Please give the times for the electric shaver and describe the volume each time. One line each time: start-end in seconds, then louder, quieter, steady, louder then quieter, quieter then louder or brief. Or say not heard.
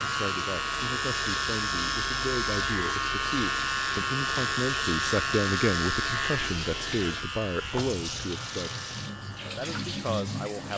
0.0-10.7 quieter.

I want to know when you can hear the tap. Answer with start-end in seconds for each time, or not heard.
0.0-10.7.